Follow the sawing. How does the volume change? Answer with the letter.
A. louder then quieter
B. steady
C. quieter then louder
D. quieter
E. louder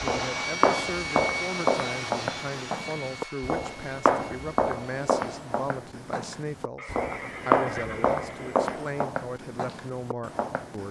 D.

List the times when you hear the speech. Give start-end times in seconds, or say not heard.
0.0-10.8.